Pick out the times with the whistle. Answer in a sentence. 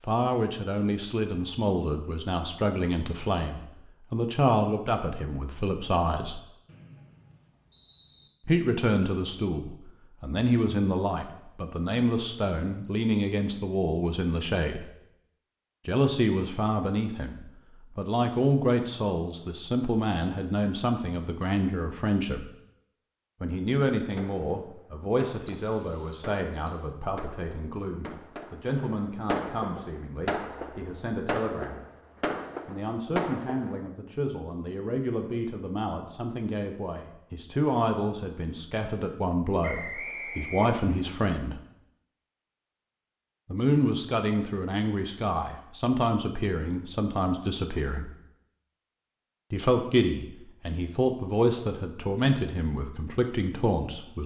You can hear the whistle from 6.7 to 8.3 s, from 25.4 to 26.9 s and from 39.6 to 40.8 s.